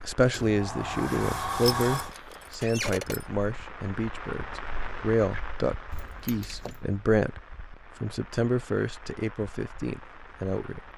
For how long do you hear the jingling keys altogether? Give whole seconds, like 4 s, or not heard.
3 s.